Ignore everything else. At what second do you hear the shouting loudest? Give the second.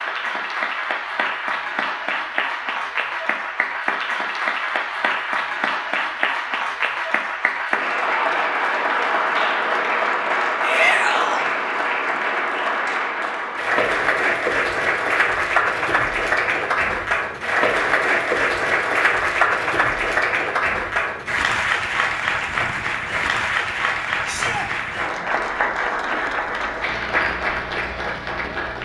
11 s.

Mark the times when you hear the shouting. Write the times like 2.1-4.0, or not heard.
10.6-11.4, 24.2-24.7.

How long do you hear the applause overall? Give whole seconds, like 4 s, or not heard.
29 s.